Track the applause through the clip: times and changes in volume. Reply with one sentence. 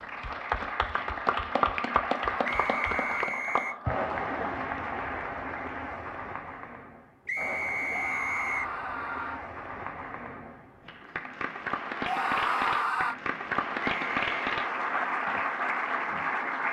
You can hear the applause from 0.0 to 16.6 s, getting quieter then louder.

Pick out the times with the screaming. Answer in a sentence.
You can hear the screaming from 2.3 to 3.3 s, from 7.9 to 9.4 s and from 12.1 to 13.2 s.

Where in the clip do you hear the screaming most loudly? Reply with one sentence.
The loudest moment of the screaming is at 13 seconds.